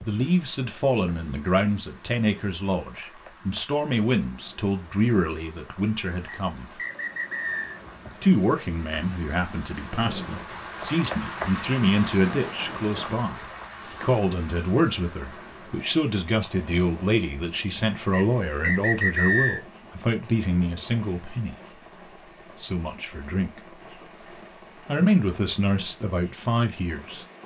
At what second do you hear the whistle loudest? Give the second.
19 s.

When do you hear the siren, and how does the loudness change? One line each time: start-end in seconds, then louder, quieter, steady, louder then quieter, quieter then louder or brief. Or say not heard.
not heard.